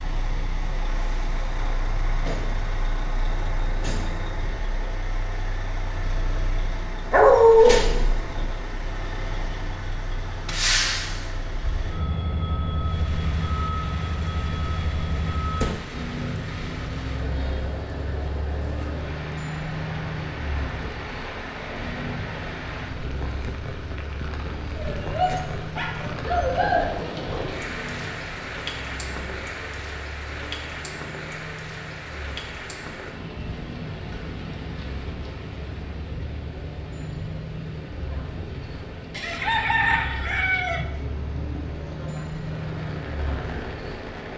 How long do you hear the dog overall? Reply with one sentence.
The dog can be heard for 3 seconds in total.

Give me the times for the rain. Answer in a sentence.
You can hear the rain from 12.8 to 44.3 s.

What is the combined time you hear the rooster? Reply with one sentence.
You can hear the rooster for 2 seconds altogether.